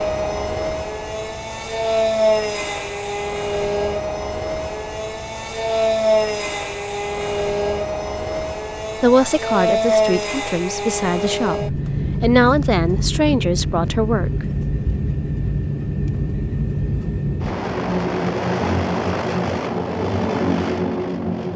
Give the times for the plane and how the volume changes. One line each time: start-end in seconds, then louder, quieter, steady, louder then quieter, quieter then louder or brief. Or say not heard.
0.0-21.5 steady.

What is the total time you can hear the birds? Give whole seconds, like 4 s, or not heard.
not heard.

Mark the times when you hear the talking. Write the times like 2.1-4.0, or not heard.
9.0-14.4.